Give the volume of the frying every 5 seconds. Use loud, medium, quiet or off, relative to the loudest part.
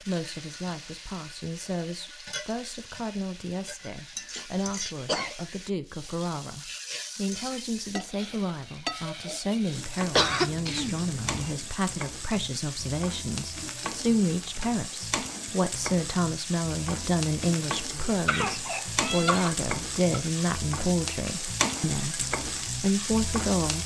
medium, medium, medium, loud, loud.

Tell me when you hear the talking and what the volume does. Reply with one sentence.
The talking can be heard from 0.0 to 23.8 s, getting louder.